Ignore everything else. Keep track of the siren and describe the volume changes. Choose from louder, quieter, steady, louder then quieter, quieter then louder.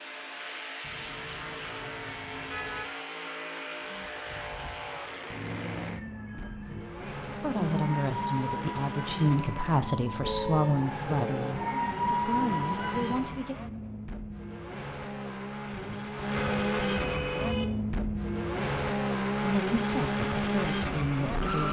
louder.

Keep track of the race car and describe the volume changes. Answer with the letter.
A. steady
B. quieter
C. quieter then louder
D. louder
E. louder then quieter
D.